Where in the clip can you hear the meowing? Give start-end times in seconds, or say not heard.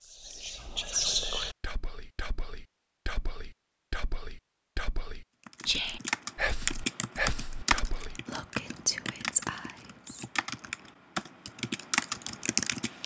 not heard.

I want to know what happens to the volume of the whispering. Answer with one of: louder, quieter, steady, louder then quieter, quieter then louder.
quieter then louder.